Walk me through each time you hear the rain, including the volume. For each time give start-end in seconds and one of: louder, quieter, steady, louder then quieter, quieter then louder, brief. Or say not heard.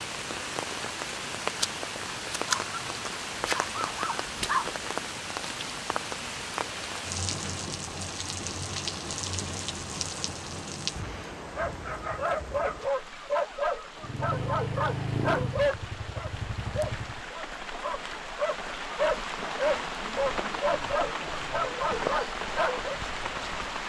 0.0-23.8 quieter then louder.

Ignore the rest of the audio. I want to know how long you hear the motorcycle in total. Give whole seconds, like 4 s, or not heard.
3 s.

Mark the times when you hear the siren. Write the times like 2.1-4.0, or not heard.
not heard.